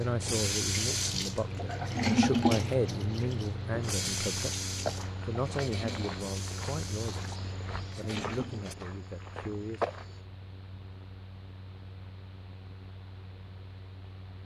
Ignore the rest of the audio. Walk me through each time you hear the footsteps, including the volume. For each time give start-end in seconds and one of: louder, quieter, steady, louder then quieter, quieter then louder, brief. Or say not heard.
3.8-10.2 quieter then louder.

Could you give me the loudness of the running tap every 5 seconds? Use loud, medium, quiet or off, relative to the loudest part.
loud, medium, off.